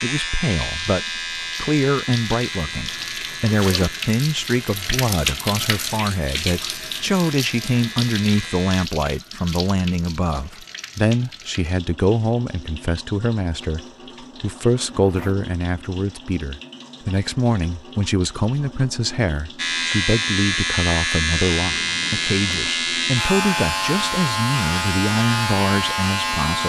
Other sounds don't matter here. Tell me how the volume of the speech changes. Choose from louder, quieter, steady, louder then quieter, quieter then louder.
steady.